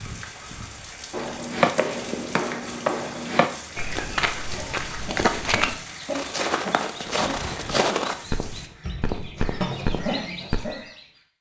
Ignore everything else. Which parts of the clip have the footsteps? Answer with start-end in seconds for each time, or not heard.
1.1-10.6.